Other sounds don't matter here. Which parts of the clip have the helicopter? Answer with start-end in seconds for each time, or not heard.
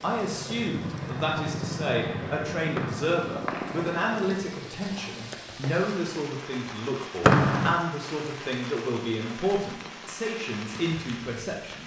0.0-5.3.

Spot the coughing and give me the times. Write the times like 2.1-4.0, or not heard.
not heard.